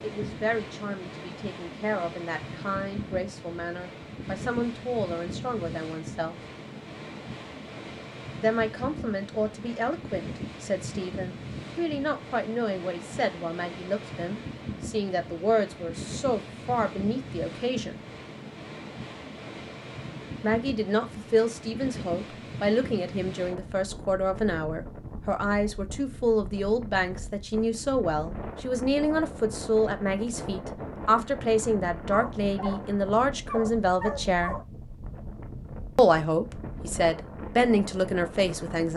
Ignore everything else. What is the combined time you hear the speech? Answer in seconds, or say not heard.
33 s.